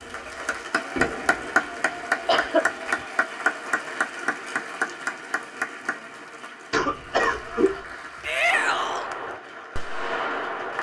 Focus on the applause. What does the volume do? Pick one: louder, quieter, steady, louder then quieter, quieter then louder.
quieter.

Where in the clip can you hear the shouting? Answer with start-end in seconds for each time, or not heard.
8.2-9.1.